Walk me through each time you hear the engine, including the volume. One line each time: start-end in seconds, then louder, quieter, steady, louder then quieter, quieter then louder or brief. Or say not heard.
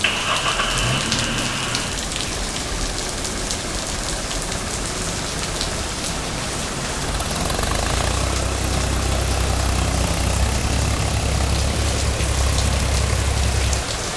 0.0-14.1 quieter then louder.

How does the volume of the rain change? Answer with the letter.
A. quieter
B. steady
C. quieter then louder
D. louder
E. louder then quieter
B.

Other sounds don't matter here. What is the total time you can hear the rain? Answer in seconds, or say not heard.
14 s.